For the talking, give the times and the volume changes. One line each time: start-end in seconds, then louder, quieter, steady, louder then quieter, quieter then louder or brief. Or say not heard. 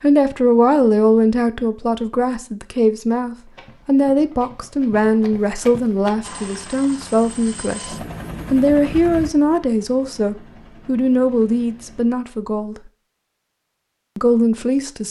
0.0-12.9 steady
14.2-15.0 brief.